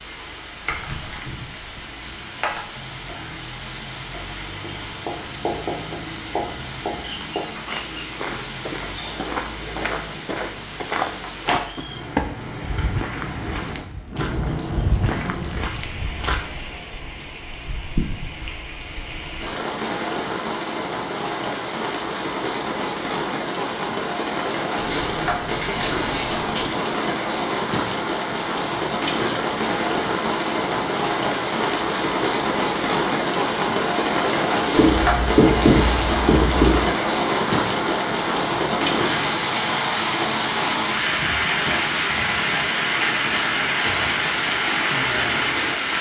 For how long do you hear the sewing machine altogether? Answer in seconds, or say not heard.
not heard.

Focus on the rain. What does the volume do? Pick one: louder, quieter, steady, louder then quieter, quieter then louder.
louder.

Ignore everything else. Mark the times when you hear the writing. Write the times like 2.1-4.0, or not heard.
4.6-7.5, 24.8-26.7, 34.8-36.9.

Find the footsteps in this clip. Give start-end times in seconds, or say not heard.
7.7-16.4.